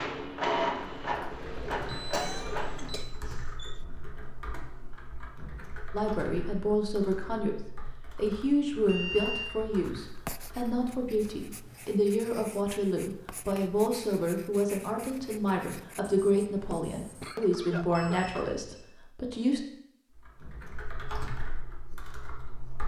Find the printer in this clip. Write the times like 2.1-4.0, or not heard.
0.0-3.0.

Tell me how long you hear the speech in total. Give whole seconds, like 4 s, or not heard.
14 s.